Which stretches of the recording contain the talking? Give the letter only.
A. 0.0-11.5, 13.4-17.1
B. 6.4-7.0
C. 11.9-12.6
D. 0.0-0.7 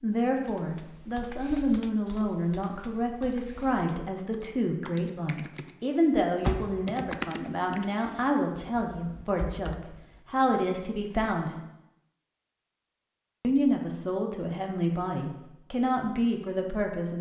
A.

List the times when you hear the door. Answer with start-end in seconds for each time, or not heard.
6.4-7.0.